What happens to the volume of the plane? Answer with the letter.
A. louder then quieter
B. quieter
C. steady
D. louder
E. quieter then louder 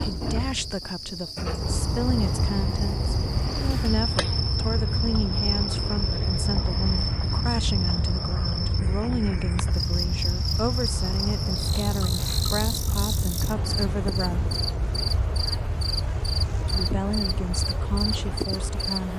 B.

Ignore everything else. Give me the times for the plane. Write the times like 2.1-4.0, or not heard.
1.6-19.1.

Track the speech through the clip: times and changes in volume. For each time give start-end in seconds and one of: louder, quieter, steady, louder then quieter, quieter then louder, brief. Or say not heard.
0.0-14.6 steady
16.6-19.1 brief.